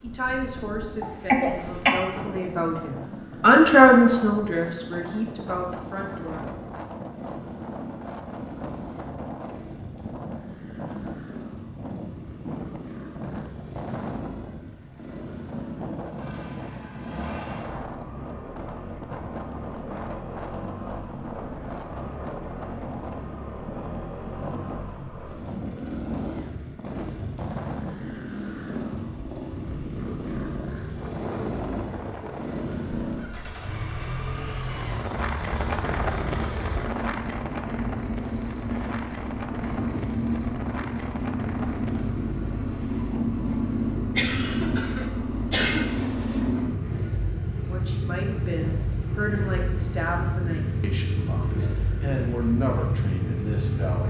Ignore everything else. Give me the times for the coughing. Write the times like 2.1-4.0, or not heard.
1.0-2.2, 44.1-46.0.